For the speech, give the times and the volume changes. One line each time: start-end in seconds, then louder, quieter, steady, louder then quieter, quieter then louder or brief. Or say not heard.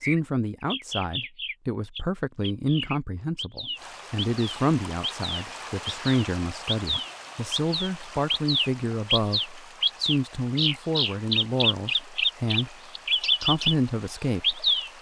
0.0-12.8 steady
13.4-14.7 brief.